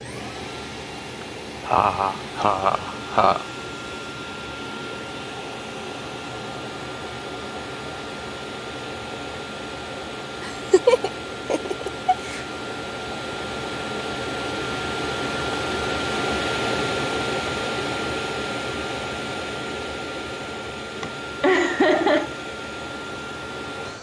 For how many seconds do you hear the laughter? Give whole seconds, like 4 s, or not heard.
5 s.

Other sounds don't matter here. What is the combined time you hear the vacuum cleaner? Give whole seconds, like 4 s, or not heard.
24 s.